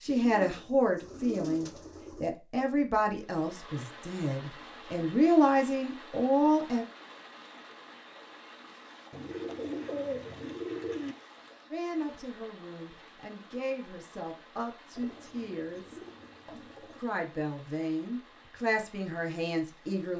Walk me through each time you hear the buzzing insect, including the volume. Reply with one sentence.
The buzzing insect can't be heard in this clip.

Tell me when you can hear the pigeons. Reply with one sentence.
You can hear the pigeons from 0.1 to 2.3 s, from 9.1 to 11.2 s and from 14.9 to 17.1 s.